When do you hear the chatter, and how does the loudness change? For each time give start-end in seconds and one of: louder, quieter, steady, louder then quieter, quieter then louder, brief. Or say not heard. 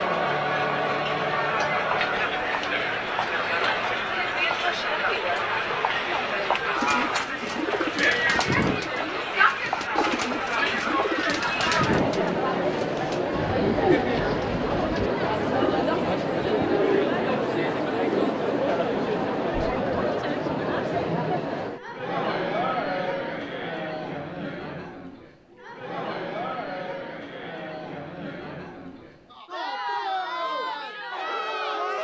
0.0-31.9 quieter.